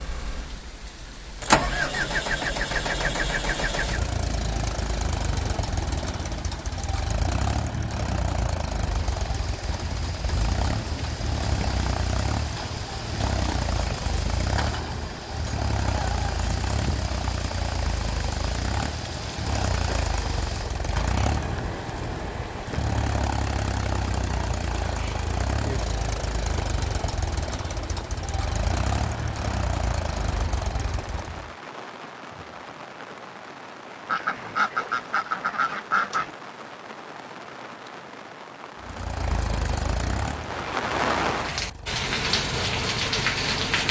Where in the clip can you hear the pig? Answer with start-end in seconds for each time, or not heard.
not heard.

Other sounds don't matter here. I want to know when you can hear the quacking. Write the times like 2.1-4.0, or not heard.
34.0-36.3.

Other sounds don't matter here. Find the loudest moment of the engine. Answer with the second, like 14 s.
2 s.